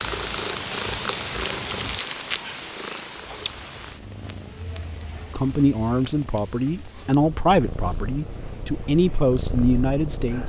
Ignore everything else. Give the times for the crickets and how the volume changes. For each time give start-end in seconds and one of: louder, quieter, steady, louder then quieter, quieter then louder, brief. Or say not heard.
0.0-10.4 louder then quieter.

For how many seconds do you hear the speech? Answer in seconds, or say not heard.
5 s.